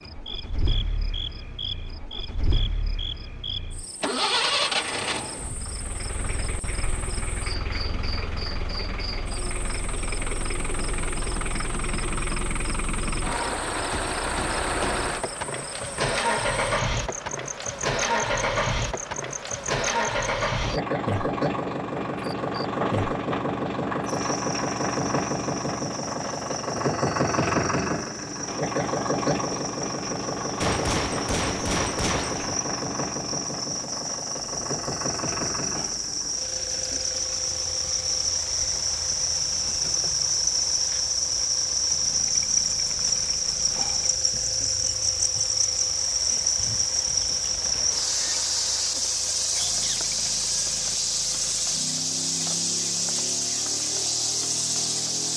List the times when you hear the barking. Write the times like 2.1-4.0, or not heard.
not heard.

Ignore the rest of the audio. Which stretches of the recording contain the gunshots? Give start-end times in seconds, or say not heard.
30.6-32.5.